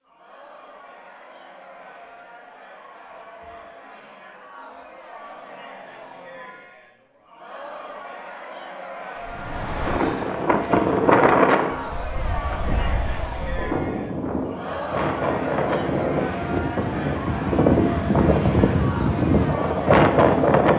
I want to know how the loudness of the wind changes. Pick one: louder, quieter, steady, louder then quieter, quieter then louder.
quieter then louder.